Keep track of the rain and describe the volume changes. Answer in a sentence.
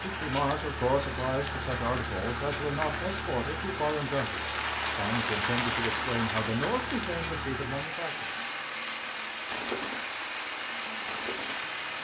The volume of the rain goes up, then down.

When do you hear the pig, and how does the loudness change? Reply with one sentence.
You can't hear the pig here.